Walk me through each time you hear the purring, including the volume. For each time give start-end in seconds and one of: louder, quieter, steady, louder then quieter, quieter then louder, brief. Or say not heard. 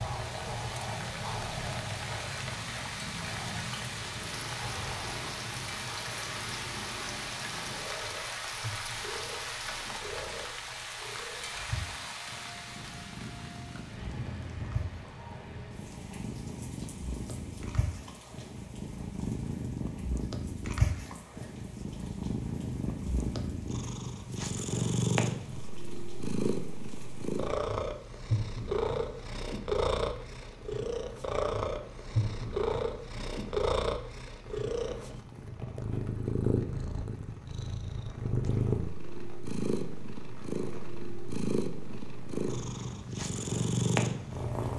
0.0-44.7 louder.